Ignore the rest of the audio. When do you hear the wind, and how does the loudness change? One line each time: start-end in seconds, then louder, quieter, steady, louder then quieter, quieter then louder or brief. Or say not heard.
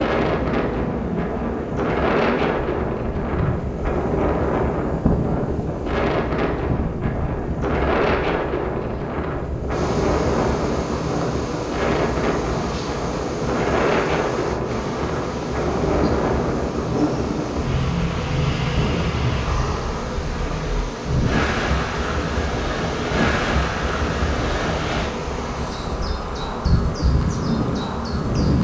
0.0-28.5 steady.